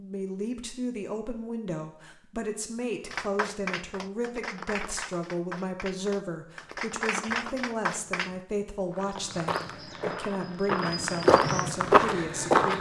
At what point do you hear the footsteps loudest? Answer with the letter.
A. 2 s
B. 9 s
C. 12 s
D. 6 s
C.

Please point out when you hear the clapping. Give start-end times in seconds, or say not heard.
3.0-8.3.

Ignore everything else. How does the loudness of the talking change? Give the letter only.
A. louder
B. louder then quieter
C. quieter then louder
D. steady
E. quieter
D.